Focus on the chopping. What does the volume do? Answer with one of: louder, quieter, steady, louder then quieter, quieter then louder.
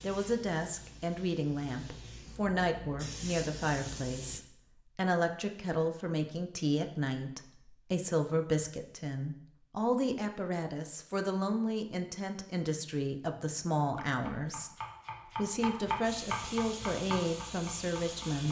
louder then quieter.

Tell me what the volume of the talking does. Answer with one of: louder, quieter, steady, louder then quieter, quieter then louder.
steady.